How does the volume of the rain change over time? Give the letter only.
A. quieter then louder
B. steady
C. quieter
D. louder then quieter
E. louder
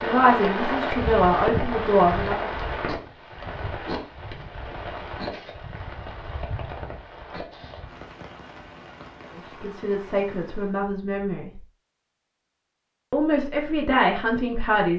C.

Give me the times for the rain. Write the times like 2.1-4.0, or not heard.
0.0-10.8.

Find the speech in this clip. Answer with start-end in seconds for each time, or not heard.
0.0-2.5, 9.4-11.6, 13.1-14.9.